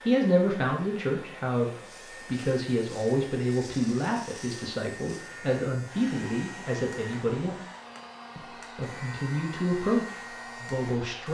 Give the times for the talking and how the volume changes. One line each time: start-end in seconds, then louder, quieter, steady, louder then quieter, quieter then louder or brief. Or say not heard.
0.1-7.6 steady
8.3-11.3 brief.